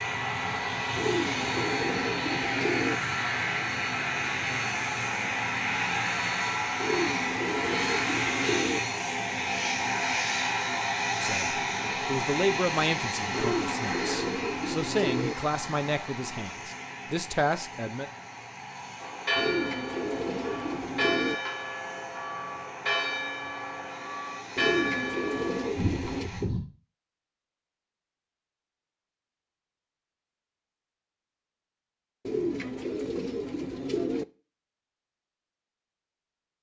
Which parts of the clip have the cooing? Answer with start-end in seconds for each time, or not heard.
0.9-3.0, 6.8-8.8, 13.3-15.3, 19.4-21.4, 24.6-26.3, 32.2-34.2.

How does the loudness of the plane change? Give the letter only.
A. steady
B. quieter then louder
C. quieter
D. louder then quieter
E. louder
C.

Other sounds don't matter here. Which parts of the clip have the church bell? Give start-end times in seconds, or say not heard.
19.0-26.6.